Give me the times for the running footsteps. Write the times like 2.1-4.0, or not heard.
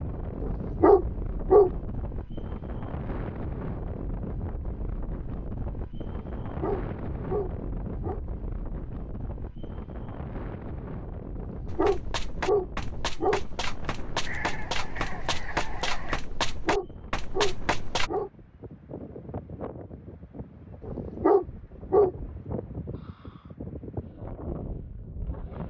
11.7-18.1.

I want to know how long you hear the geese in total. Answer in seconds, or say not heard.
2 s.